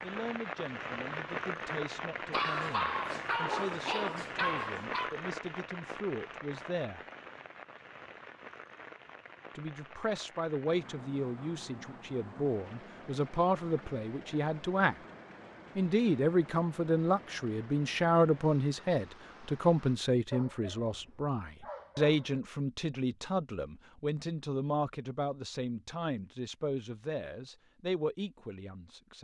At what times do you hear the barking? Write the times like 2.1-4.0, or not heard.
2.3-5.2, 20.3-22.4.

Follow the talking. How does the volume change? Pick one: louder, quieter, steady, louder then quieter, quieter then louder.
louder then quieter.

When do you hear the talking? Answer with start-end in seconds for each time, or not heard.
0.0-7.0, 9.6-14.9, 15.8-29.1.